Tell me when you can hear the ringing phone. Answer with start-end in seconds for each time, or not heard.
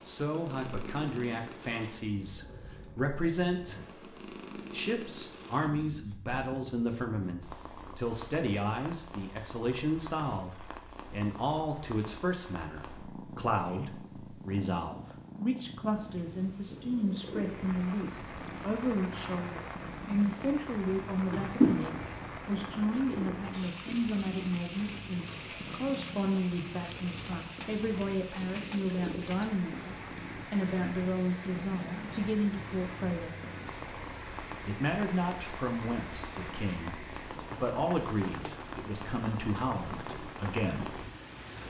21.3-22.1.